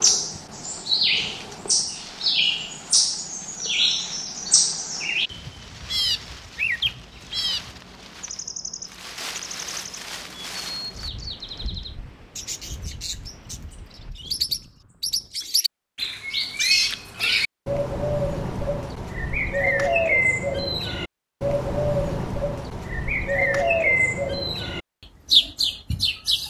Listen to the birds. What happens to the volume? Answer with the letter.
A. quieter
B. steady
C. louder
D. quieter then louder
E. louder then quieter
D.